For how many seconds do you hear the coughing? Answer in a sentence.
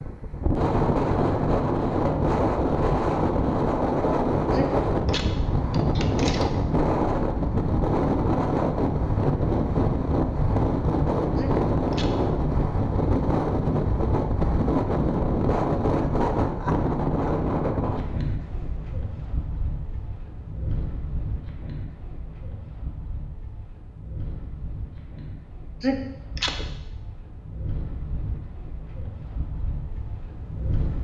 You can hear the coughing for 4 seconds altogether.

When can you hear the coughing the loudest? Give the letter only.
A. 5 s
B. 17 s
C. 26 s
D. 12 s
C.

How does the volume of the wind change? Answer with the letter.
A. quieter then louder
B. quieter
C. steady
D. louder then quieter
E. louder
B.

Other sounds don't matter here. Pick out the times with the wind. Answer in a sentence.
The wind can be heard from 0.0 to 30.9 s.